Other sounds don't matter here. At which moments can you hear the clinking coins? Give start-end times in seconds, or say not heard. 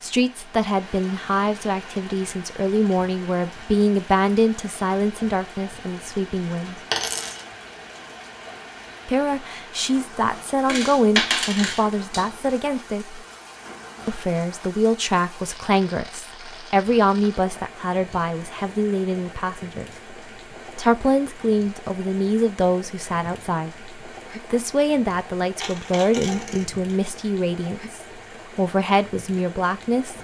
6.9-7.4, 10.7-12.2, 25.6-26.8.